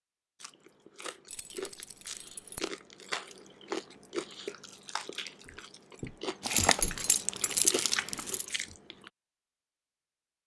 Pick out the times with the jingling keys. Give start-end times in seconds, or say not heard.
1.2-2.7, 6.4-8.4.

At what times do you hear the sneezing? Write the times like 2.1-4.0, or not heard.
not heard.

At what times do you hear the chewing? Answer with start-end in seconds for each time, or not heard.
0.4-9.1.